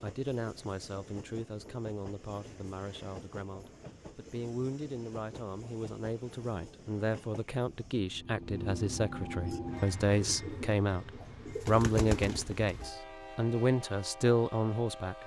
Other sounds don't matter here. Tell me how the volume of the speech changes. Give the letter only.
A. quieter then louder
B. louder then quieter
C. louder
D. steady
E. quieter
C.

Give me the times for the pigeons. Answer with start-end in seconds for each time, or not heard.
9.4-12.9.